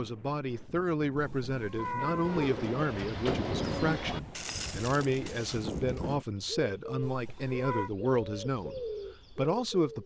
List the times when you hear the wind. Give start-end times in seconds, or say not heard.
0.0-6.2.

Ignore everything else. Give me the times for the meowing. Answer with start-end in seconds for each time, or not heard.
1.1-2.6, 7.0-7.9.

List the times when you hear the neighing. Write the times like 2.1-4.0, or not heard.
not heard.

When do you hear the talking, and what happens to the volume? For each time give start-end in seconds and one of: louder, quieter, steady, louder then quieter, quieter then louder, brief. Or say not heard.
0.0-10.0 steady.